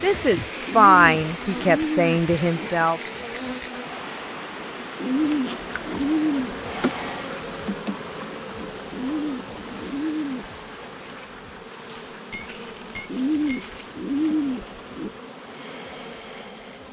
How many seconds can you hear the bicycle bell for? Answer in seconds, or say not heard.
4 s.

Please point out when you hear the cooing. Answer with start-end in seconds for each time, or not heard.
0.7-2.7, 5.0-6.5, 8.9-10.5, 13.1-15.1.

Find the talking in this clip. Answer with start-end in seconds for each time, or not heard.
0.0-3.0.